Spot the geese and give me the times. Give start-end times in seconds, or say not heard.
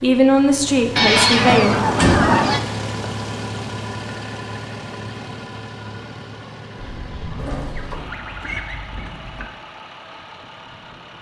0.9-2.6, 6.8-9.5.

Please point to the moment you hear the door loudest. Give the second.
2 s.